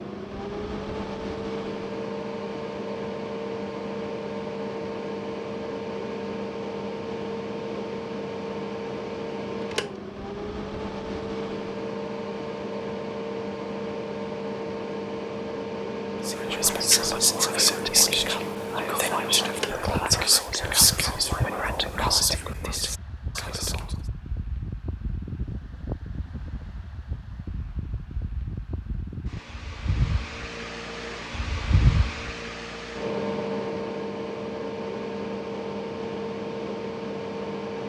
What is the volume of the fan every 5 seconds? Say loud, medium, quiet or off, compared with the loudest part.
loud, loud, loud, loud, medium, medium, loud, loud.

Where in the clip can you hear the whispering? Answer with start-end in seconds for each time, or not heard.
16.2-23.9.